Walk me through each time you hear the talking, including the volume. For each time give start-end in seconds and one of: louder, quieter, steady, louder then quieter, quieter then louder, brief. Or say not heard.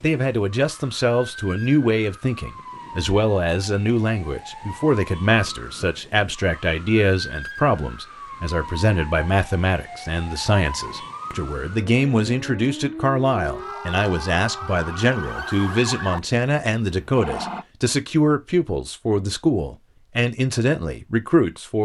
0.0-21.7 steady.